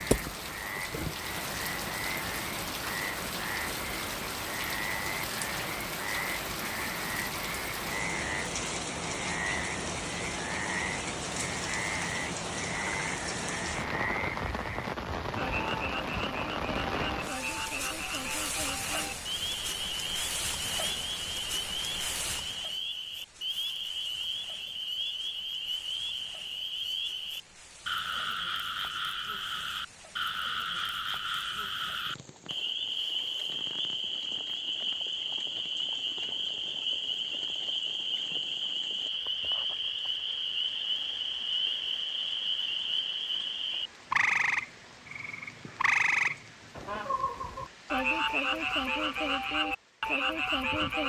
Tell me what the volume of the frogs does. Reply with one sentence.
The loudness of the frogs goes up.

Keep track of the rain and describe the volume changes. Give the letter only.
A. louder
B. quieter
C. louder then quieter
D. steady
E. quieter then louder
B.